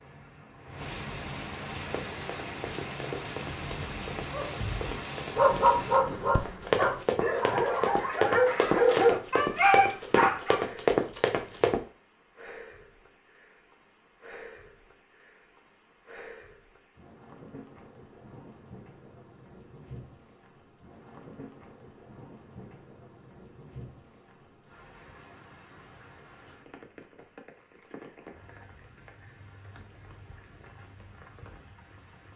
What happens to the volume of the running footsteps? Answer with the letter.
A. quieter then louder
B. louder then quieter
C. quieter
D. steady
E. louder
E.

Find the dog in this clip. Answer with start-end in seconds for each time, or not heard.
4.3-10.7.